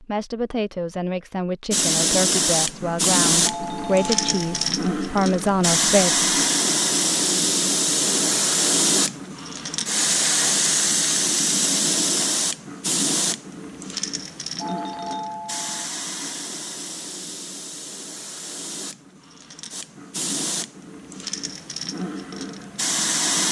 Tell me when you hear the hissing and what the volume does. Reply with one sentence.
The hissing can be heard from 1.7 to 23.4 s, getting quieter.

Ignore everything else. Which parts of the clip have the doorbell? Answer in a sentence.
The doorbell can be heard from 3.4 to 4.8 s and from 14.6 to 15.9 s.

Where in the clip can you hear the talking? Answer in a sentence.
You can hear the talking from 0.0 to 6.2 s.